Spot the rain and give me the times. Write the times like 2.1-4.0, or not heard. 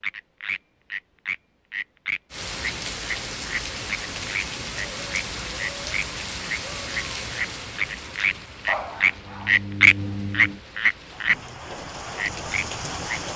2.3-13.3.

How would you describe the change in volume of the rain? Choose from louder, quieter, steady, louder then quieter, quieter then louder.
quieter then louder.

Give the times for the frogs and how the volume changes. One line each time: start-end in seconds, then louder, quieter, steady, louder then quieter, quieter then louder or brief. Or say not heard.
0.0-11.3 louder
12.2-13.2 brief.